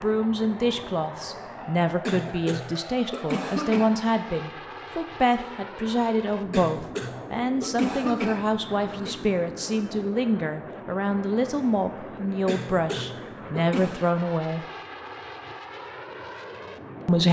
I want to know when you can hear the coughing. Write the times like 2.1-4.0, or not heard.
2.0-3.9, 6.5-9.2, 12.4-14.1.